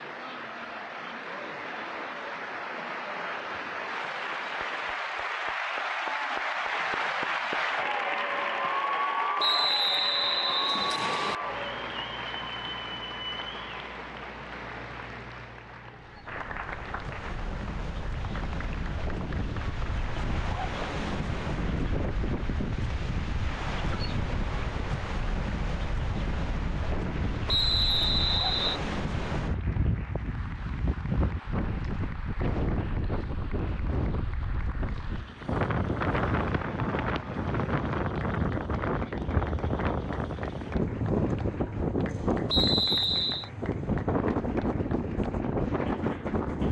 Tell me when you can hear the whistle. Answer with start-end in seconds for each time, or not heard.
9.3-11.3, 27.4-28.8, 42.5-43.5.